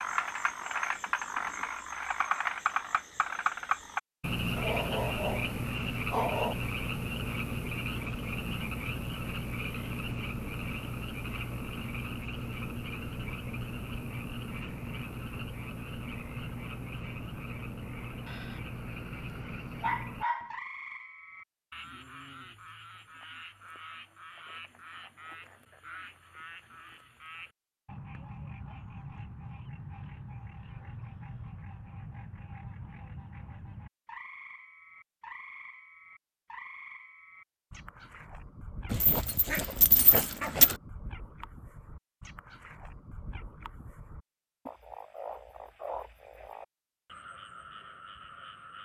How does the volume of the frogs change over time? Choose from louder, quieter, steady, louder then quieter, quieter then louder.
quieter.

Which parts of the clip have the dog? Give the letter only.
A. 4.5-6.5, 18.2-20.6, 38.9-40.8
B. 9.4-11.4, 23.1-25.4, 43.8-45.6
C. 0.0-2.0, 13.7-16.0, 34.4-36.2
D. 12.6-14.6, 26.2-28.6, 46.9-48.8
A.